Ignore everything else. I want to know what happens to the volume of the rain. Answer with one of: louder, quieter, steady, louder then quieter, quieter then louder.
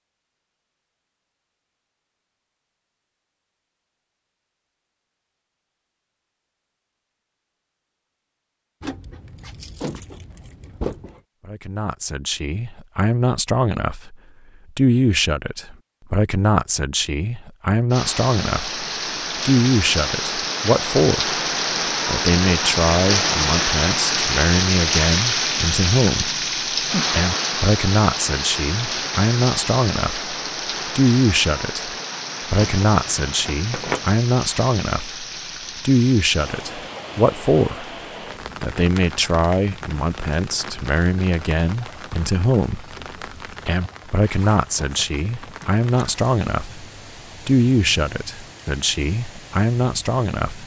quieter.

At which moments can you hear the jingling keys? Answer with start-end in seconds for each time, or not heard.
8.8-11.2, 32.5-34.0.